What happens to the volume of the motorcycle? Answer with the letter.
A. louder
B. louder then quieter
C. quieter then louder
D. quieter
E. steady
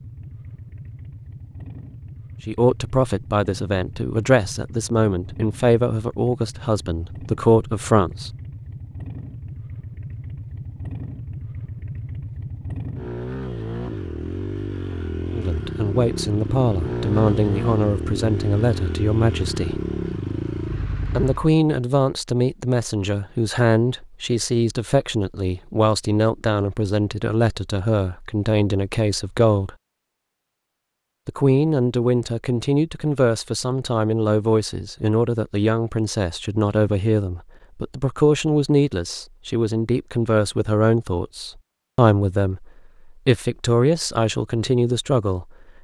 A.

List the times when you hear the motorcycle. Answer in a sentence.
You can hear the motorcycle from 0.0 to 21.6 s.